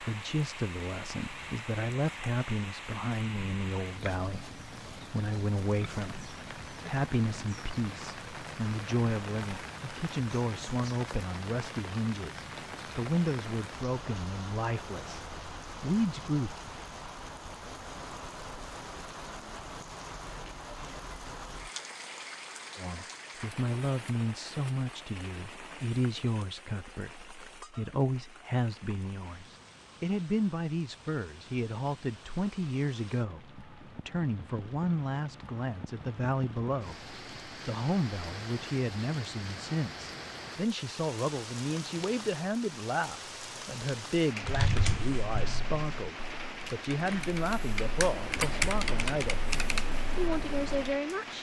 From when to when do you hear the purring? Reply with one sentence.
You can't hear the purring here.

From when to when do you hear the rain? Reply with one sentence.
The rain can be heard from 0.0 to 51.3 s.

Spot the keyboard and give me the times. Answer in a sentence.
The keyboard can be heard from 44.4 to 51.0 s.